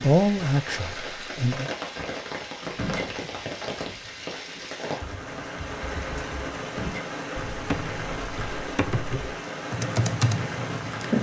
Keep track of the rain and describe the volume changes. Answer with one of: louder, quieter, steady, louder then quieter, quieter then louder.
steady.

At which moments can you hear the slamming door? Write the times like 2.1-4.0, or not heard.
2.6-3.1, 6.6-7.1.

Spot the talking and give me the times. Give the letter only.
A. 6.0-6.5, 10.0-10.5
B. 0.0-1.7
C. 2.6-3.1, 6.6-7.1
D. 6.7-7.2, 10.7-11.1
B.